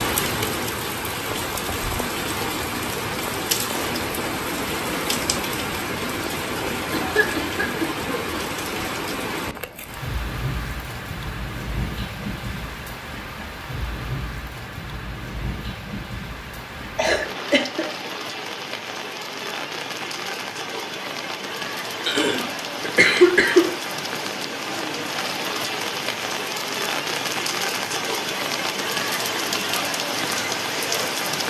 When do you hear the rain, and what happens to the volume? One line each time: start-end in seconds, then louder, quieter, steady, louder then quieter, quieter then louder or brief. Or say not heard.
0.0-31.4 quieter then louder.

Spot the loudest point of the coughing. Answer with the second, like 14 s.
23 s.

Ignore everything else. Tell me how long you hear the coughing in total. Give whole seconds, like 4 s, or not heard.
4 s.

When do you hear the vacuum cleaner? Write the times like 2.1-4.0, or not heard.
not heard.